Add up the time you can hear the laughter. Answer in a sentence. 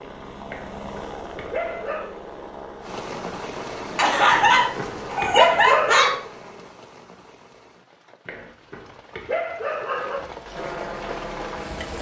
The laughter can be heard for 2 seconds in total.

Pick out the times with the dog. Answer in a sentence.
The dog can be heard from 0.5 to 2.1 s, from 4.3 to 6.2 s and from 8.2 to 10.2 s.